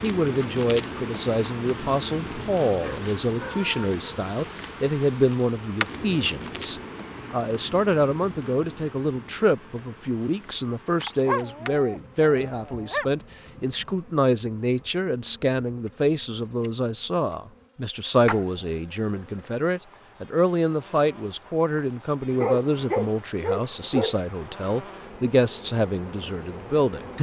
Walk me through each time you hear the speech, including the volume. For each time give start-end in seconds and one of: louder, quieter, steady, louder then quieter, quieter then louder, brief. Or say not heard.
0.0-27.1 steady.